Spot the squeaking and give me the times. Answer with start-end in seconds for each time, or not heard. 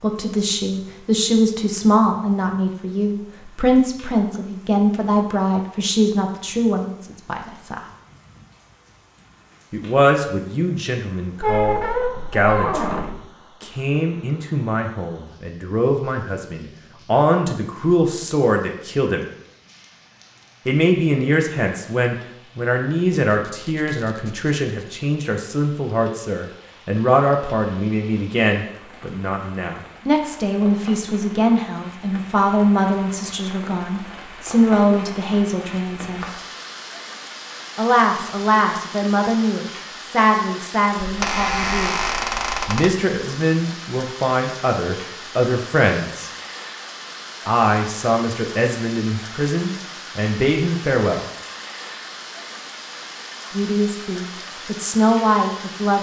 11.4-13.2, 23.3-25.0, 41.0-42.9.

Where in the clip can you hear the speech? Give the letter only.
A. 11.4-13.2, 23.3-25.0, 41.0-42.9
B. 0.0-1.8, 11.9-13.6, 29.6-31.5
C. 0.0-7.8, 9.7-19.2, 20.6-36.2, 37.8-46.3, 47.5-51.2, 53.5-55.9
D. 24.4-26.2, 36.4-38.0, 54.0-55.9
C.